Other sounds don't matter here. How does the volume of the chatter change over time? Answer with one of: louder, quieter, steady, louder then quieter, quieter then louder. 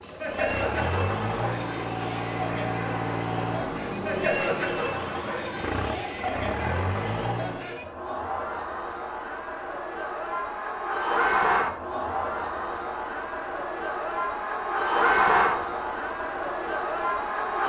louder.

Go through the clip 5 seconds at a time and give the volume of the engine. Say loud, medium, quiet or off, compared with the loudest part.
loud, loud, off, off.